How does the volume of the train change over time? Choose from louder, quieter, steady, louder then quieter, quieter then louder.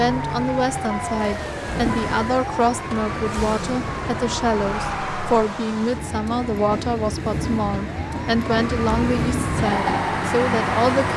louder.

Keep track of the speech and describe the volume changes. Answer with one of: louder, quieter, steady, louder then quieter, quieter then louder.
steady.